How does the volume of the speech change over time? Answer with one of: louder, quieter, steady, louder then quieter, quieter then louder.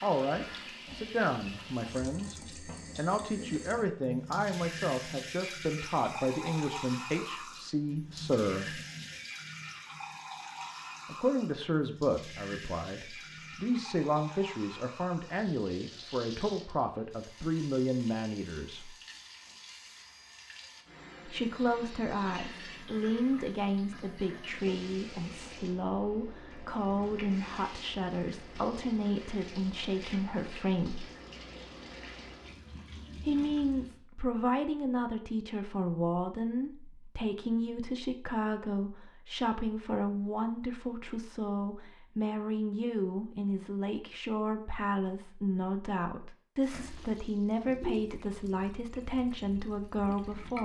steady.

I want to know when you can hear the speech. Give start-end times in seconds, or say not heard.
0.0-8.8, 11.1-18.9, 21.2-31.1, 33.2-50.6.